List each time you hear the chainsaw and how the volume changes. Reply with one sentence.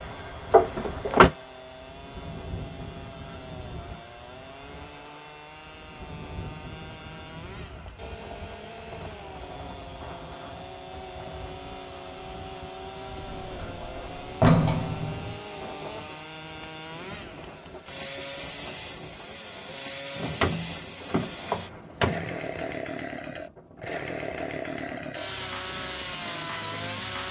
The chainsaw can be heard from 0.0 to 27.2 s, getting louder.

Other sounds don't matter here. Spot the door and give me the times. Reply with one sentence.
You can hear the door from 0.5 to 1.3 s, from 13.2 to 15.4 s and from 20.1 to 22.8 s.